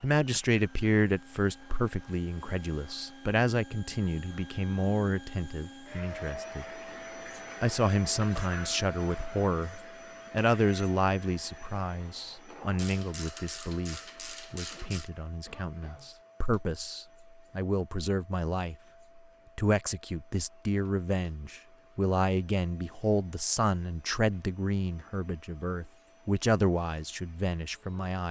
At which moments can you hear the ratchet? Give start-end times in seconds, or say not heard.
12.8-15.1.